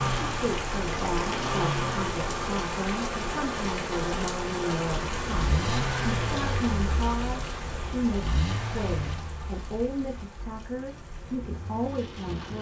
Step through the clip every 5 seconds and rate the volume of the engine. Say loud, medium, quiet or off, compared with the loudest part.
loud, loud, quiet.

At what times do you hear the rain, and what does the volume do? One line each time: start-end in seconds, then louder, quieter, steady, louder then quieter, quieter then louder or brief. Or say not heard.
0.0-12.5 quieter.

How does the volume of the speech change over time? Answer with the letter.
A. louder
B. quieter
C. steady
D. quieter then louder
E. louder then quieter
C.